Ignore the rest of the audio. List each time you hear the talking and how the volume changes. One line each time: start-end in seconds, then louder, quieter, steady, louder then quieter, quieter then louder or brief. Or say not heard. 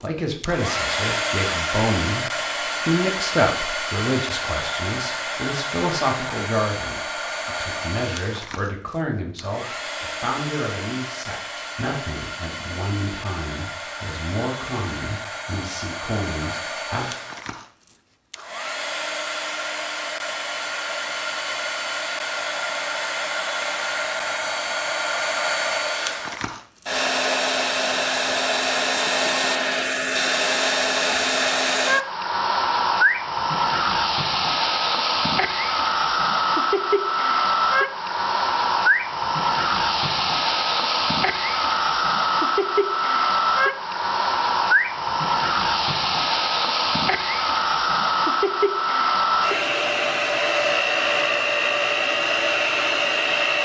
0.0-17.1 quieter.